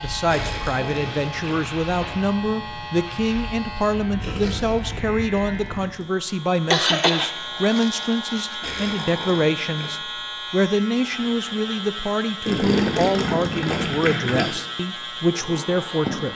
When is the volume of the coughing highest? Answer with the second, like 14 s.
7 s.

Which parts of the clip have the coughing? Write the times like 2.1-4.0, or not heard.
6.7-8.6.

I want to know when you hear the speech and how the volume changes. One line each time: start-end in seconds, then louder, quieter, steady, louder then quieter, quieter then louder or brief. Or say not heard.
0.0-16.3 steady.